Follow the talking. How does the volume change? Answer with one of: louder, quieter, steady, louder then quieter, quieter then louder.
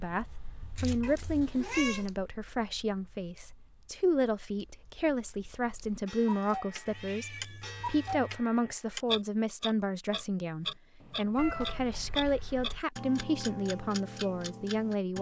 steady.